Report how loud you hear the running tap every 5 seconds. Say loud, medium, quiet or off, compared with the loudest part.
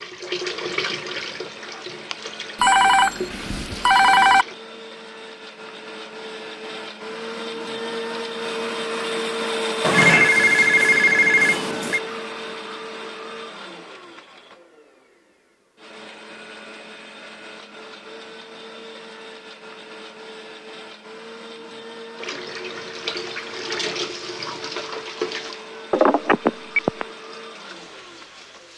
loud, off, off, off, loud, medium.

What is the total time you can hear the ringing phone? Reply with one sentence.
The ringing phone can be heard for 5 seconds in total.